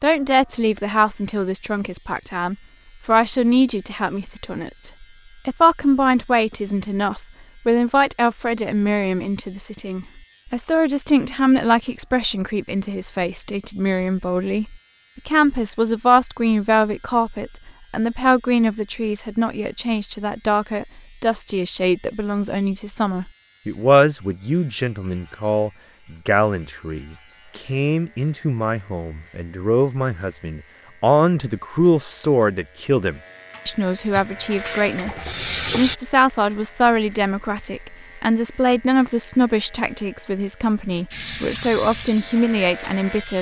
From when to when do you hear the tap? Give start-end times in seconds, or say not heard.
34.1-36.0, 41.1-43.3.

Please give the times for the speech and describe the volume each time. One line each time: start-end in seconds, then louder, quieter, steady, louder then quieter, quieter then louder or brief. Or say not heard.
0.0-43.3 steady.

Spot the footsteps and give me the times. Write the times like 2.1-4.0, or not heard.
not heard.